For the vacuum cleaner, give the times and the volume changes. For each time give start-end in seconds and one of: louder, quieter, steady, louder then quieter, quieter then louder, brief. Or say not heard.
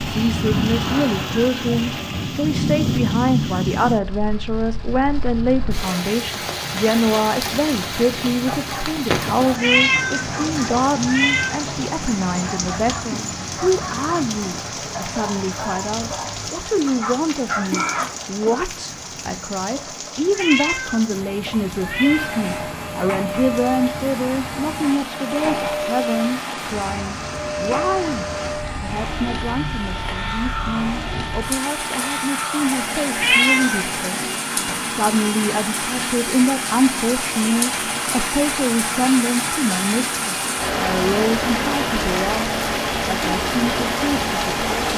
0.0-2.2 brief
21.8-44.9 steady.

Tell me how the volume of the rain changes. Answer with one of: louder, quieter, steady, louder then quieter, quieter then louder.
quieter then louder.